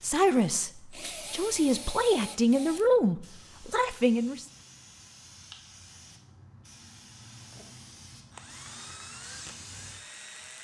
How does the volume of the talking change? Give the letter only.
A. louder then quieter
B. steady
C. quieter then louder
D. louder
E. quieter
A.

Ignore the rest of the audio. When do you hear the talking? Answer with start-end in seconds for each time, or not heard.
0.0-4.5.